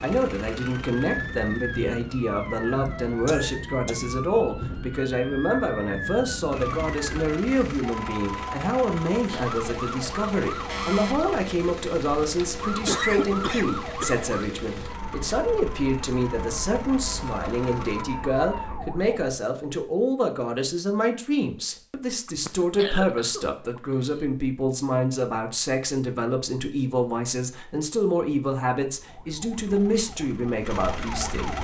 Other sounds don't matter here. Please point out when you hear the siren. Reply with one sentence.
You can hear the siren from 0.0 to 19.3 s and from 28.9 to 31.5 s.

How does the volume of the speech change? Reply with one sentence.
The loudness of the speech stays about the same.